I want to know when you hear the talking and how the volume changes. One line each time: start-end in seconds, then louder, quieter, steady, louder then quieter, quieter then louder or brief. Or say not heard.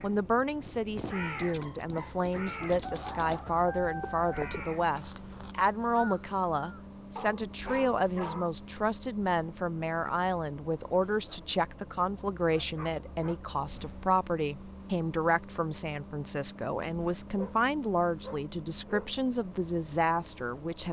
0.0-20.8 steady.